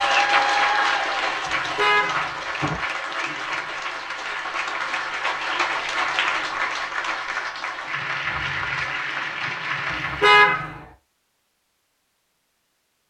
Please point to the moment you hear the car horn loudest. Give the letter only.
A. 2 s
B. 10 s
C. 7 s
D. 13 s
B.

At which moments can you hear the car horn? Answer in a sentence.
The car horn can be heard from 1.4 to 2.8 s and from 9.9 to 10.8 s.